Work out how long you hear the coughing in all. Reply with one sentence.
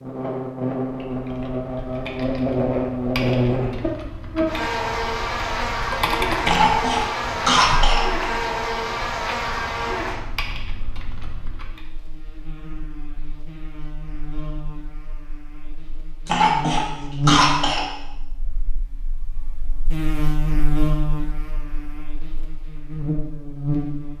The coughing can be heard for 3 seconds in total.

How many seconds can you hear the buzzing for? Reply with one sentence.
You can hear the buzzing for 24 seconds altogether.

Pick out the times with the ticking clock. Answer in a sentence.
You can't hear the ticking clock here.